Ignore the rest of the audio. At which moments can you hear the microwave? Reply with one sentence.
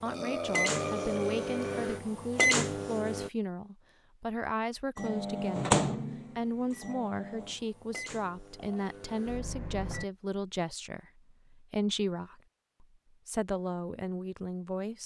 You can hear the microwave from 0.1 to 3.3 s and from 5.0 to 10.1 s.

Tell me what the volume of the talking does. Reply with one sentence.
The loudness of the talking stays about the same.